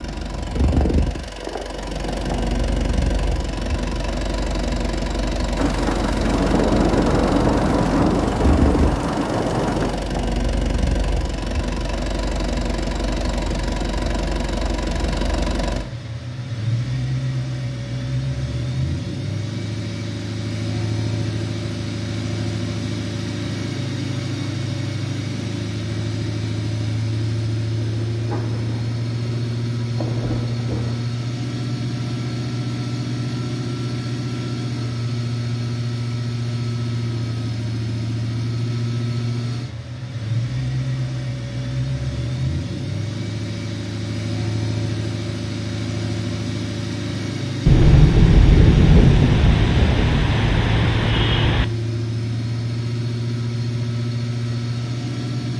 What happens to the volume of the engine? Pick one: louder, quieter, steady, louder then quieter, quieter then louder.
steady.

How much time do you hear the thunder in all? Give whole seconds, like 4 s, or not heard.
12 s.